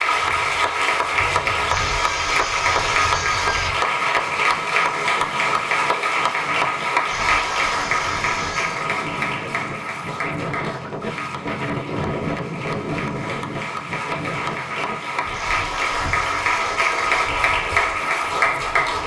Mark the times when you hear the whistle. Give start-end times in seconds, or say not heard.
not heard.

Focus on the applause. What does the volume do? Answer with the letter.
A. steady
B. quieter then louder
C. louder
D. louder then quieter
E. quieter
B.